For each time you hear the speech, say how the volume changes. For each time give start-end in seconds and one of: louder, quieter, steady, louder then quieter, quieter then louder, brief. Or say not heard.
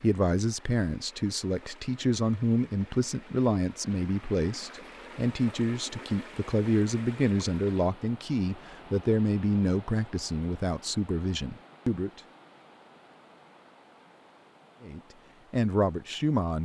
0.0-12.2 steady
14.8-16.6 brief.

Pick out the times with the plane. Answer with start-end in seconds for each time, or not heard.
not heard.